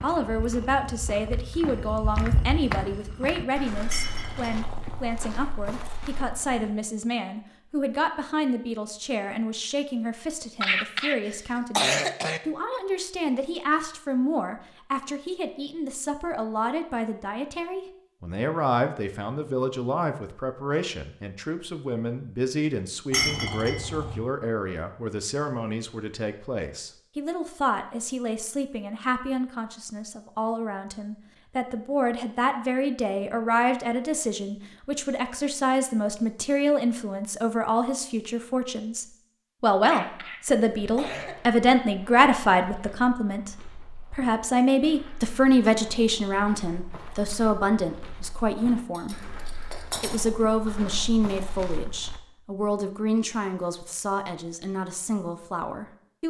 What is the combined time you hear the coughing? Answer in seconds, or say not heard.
3 s.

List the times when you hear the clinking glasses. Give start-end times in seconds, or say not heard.
3.9-5.0, 23.1-24.2, 49.0-51.0.